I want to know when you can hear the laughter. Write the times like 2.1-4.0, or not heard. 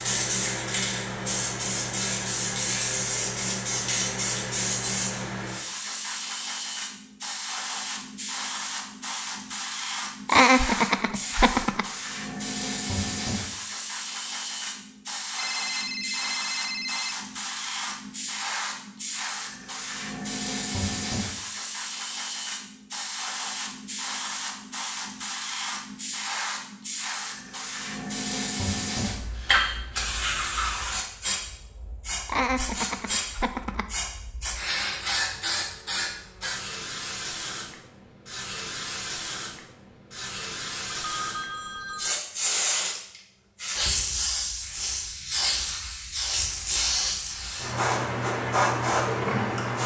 10.2-11.8, 32.2-33.9.